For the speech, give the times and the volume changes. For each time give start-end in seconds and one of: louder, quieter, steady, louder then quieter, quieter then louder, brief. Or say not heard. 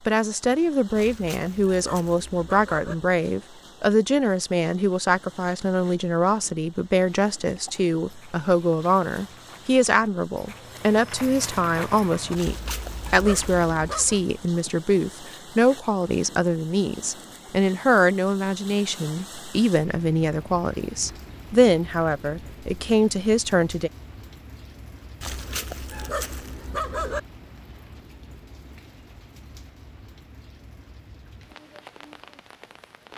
0.1-23.9 steady.